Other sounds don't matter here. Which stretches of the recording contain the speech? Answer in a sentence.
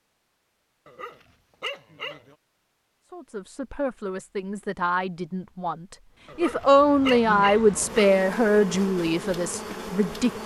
You can hear the speech from 3.1 to 10.4 s.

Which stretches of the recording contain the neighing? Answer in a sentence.
The neighing can't be heard in this clip.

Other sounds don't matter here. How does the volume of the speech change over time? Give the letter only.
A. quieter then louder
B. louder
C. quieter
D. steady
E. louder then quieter
E.